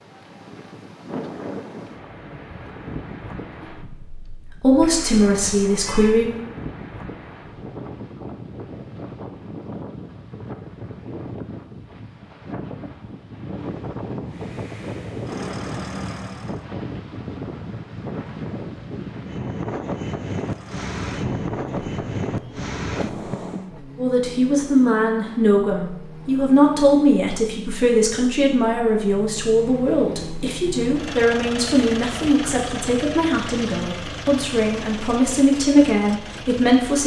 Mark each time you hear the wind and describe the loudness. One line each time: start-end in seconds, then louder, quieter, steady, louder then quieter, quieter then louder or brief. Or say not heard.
0.0-23.6 louder.